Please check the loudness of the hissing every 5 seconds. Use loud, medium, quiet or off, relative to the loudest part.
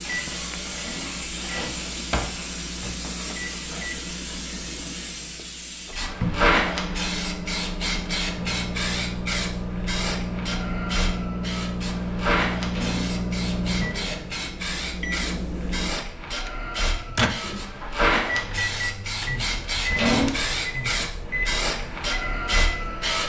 medium, loud, loud, loud, loud.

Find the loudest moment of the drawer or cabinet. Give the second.
20 s.